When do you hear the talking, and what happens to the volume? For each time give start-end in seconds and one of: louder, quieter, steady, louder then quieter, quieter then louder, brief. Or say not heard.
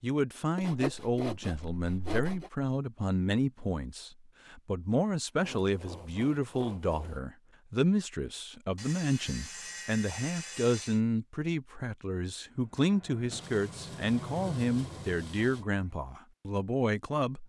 0.0-17.4 steady.